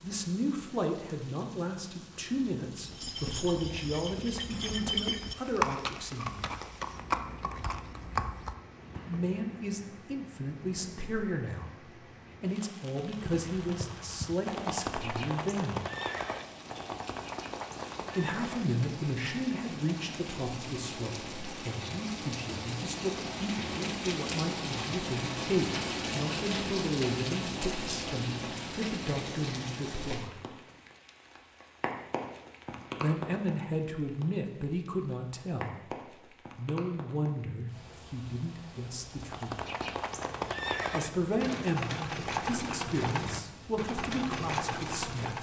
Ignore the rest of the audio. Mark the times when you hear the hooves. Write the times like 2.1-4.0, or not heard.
2.8-9.3, 13.2-18.6, 39.1-45.3.